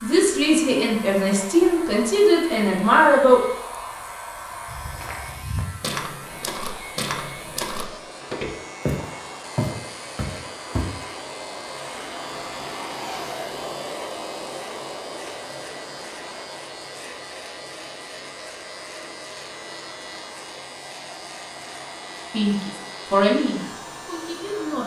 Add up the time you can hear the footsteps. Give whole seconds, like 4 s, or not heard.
6 s.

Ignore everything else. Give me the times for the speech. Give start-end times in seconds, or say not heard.
0.0-3.4, 22.3-24.8.